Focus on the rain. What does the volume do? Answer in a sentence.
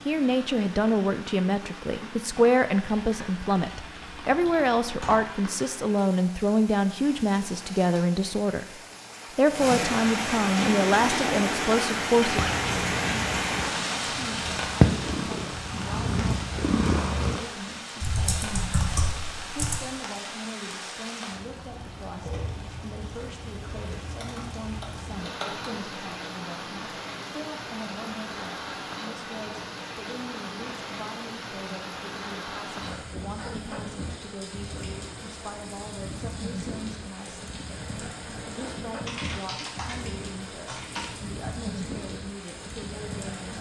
The loudness of the rain goes up, then down.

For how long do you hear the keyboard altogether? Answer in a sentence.
You can hear the keyboard for 8 seconds altogether.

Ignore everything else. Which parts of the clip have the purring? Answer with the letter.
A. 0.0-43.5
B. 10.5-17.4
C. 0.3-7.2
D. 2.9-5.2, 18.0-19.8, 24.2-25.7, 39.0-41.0
B.